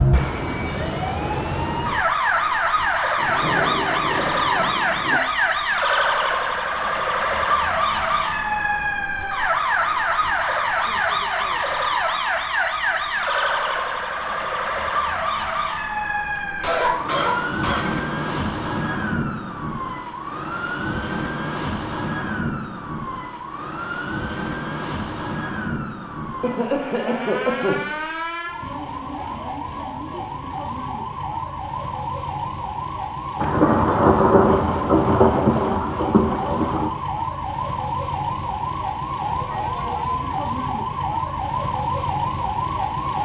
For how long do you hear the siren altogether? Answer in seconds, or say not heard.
43 s.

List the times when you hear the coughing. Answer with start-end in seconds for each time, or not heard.
16.4-18.1, 26.4-27.8.